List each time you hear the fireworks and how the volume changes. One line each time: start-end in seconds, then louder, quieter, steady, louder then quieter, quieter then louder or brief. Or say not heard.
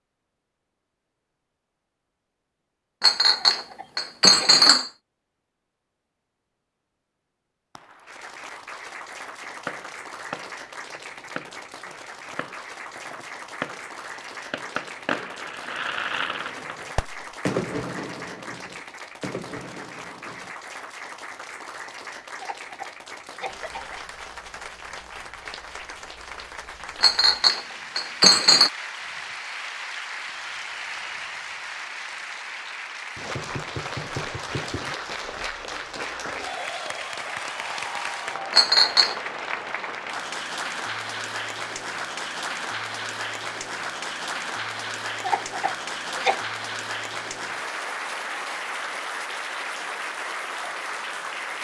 9.4-20.6 louder then quieter.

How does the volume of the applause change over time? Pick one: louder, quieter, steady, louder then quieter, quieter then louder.
louder.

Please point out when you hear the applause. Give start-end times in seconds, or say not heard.
7.8-51.5.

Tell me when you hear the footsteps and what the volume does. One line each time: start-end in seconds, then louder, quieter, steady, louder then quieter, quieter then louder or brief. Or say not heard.
not heard.